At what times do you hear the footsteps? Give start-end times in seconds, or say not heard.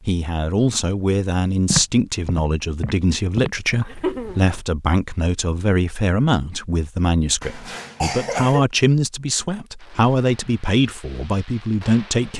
1.6-4.7.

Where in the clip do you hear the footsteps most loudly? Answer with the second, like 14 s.
2 s.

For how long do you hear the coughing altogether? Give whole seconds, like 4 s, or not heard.
2 s.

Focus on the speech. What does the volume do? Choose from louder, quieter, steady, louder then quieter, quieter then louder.
steady.